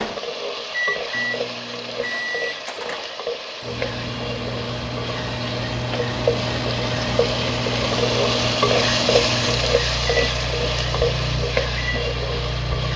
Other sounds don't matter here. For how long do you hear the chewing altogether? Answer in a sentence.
You can't hear the chewing here.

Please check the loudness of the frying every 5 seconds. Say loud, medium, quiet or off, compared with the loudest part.
medium, loud, loud.